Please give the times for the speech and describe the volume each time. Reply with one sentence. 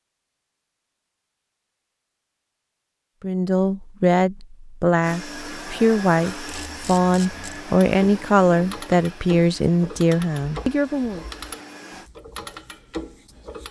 The speech can be heard from 3.2 to 11.2 s, at a steady volume.